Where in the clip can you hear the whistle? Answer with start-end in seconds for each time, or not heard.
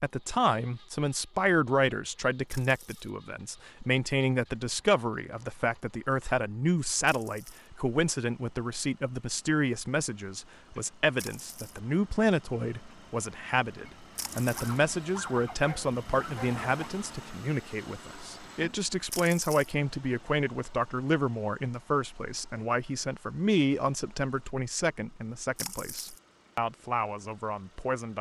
not heard.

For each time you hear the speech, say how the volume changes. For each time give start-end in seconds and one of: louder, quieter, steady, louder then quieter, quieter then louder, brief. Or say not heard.
0.0-28.1 steady.